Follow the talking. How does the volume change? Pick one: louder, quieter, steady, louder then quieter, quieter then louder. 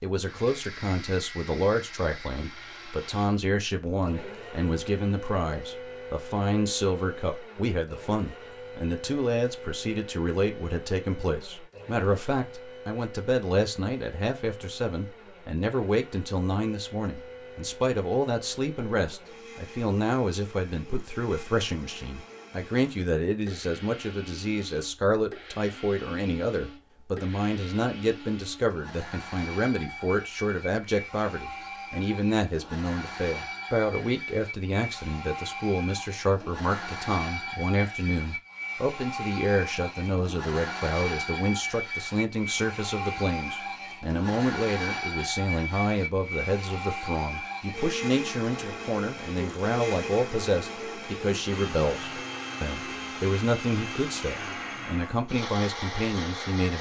steady.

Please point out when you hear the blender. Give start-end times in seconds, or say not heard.
0.0-56.7.